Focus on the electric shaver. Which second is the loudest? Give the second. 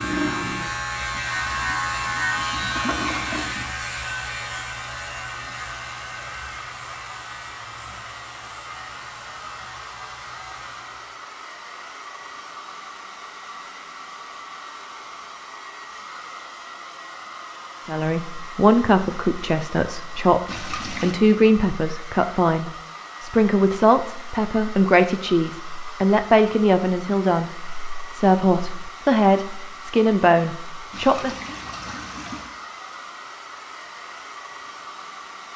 2 s.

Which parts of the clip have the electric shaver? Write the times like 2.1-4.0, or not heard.
0.0-11.2.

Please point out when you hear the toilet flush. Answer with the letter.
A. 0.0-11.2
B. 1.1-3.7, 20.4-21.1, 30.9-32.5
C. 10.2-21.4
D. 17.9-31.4
B.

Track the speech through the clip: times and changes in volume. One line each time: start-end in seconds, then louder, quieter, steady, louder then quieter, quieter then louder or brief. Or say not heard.
17.9-31.4 steady.